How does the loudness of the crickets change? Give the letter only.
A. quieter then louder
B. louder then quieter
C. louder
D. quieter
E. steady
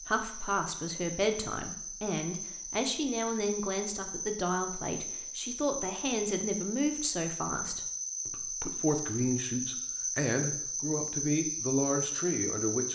C.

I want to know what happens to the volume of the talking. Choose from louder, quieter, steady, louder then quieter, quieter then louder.
steady.